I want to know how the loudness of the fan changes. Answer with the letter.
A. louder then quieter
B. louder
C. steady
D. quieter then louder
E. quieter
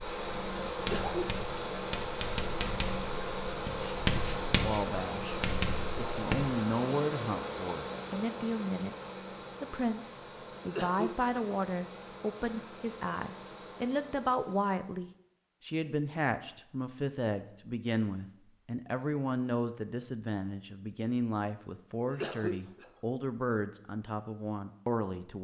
E.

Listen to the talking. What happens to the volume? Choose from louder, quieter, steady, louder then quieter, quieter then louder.
steady.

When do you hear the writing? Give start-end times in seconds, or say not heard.
0.0-6.5.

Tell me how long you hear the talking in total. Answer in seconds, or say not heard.
21 s.